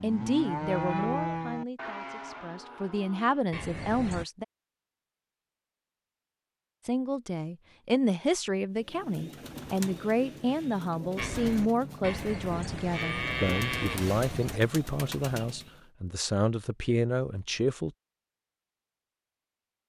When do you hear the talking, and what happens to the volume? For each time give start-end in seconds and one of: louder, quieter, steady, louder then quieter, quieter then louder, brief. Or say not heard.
0.0-4.5 quieter then louder
6.8-17.9 steady.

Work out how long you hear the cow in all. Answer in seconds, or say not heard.
8 s.